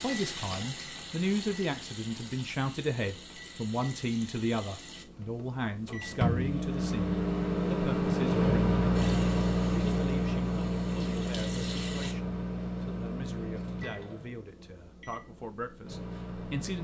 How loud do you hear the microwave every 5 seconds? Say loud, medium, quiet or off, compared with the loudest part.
quiet, loud, medium, quiet.